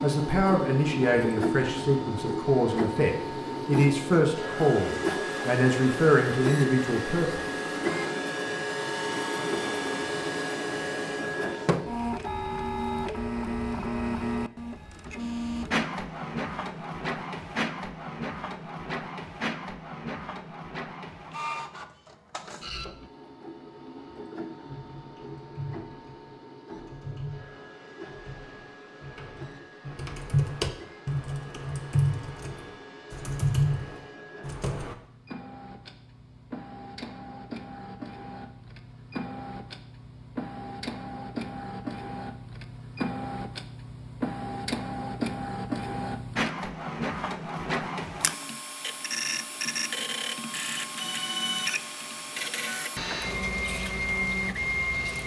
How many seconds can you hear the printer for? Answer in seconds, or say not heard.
55 s.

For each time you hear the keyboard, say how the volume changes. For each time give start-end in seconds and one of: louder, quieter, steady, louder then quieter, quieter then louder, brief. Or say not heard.
24.6-35.0 louder.